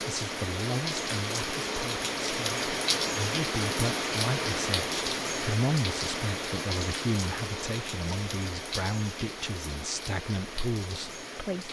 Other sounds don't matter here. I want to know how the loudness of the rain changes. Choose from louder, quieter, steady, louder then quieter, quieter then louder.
quieter.